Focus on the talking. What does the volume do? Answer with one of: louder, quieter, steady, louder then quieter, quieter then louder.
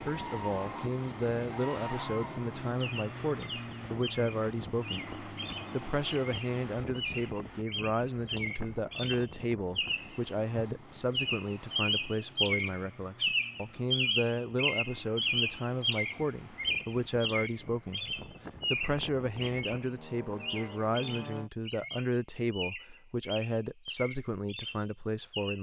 steady.